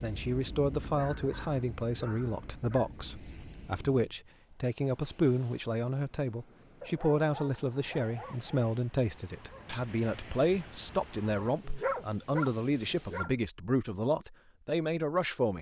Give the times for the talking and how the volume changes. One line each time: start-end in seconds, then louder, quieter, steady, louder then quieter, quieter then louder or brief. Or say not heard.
0.0-15.5 steady.